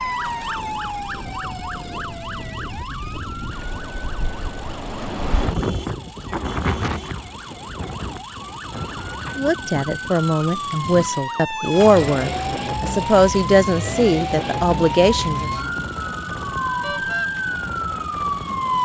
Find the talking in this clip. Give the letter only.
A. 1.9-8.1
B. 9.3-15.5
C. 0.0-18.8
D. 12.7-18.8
B.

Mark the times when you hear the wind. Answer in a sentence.
You can hear the wind from 0.0 to 18.8 s.